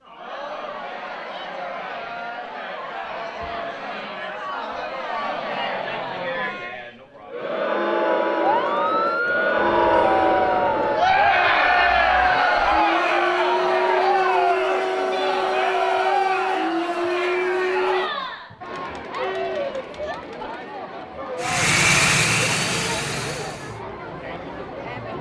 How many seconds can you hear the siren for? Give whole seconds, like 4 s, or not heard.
10 s.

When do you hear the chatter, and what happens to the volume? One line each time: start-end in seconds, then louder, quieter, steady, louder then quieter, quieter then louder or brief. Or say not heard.
0.0-25.1 louder then quieter.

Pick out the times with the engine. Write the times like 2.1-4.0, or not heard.
21.4-23.8.